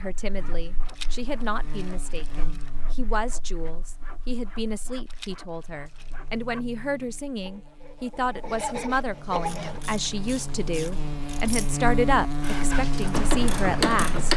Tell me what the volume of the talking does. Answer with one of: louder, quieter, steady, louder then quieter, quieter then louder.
louder.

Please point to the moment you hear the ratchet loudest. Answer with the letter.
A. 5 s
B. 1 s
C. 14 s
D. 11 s
C.